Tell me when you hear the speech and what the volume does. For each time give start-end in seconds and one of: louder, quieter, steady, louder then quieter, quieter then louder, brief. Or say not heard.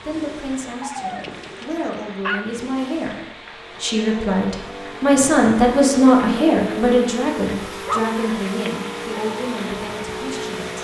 0.0-10.7 louder then quieter.